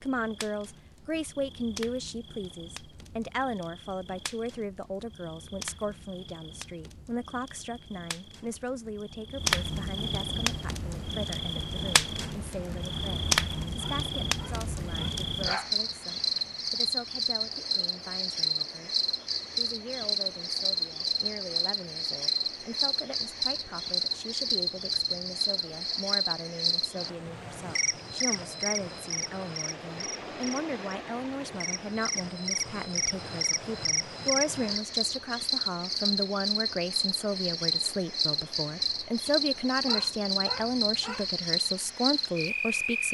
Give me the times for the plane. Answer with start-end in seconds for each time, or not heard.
not heard.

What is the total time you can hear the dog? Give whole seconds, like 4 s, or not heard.
3 s.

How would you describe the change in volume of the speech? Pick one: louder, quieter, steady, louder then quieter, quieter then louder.
quieter then louder.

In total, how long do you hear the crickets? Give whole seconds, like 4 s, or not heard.
43 s.